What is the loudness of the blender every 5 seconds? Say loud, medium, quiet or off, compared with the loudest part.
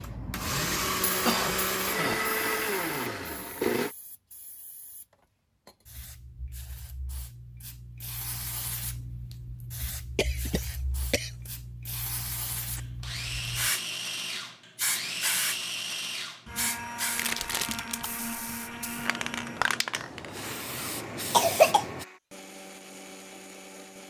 loud, off, medium, medium, quiet.